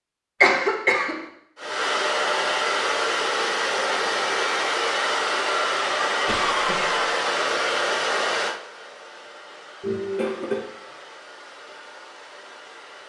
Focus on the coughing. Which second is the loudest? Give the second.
1 s.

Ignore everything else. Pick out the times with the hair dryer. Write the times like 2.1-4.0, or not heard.
1.6-13.0.